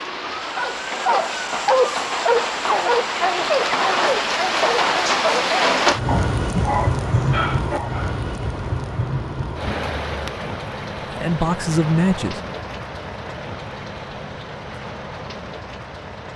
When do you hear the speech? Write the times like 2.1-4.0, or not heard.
11.2-12.4.